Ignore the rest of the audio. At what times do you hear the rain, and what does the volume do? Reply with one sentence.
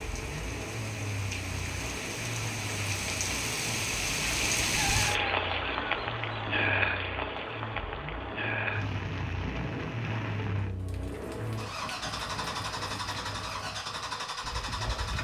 You can hear the rain from 0.0 to 15.1 s, getting louder then quieter.